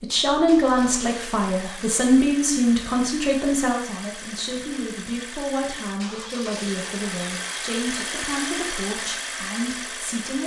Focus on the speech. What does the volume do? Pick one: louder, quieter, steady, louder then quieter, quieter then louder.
quieter.